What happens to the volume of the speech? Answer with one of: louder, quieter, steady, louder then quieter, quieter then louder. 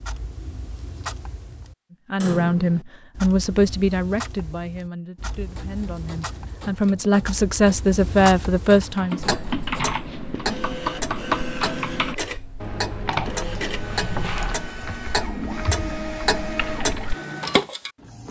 quieter then louder.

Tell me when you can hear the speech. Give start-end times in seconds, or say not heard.
2.1-9.3.